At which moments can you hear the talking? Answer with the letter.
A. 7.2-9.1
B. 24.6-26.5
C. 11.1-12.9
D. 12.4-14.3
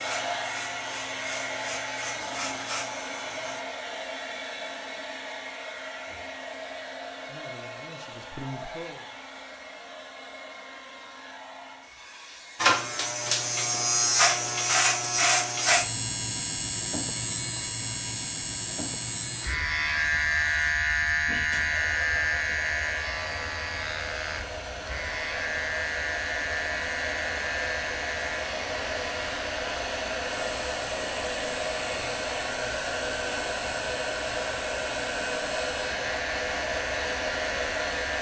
A.